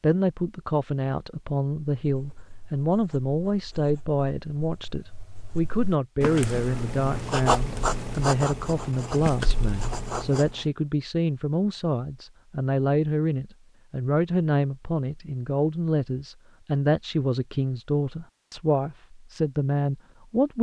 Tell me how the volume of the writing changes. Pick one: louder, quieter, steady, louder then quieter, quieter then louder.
louder then quieter.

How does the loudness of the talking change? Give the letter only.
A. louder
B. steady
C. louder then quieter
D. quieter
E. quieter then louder
B.